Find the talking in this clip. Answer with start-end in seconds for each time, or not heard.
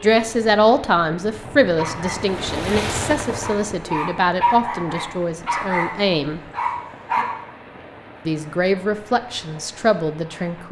0.0-6.4, 8.2-10.6.